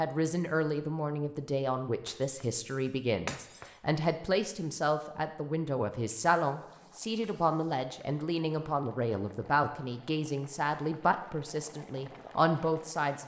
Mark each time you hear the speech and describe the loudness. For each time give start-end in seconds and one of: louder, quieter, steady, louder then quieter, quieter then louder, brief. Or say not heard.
0.0-13.2 steady.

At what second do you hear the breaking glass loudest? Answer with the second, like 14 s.
3 s.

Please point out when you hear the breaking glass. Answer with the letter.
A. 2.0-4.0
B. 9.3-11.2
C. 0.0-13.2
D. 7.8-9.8
A.